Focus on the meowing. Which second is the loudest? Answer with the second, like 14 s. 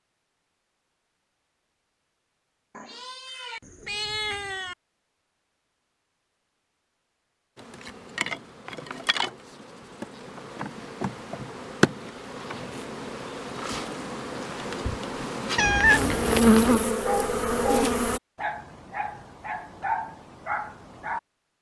16 s.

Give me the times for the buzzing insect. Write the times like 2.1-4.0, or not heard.
7.5-18.2.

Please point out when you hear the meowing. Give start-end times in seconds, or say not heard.
2.8-4.8, 15.6-16.9.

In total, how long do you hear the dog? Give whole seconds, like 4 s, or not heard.
5 s.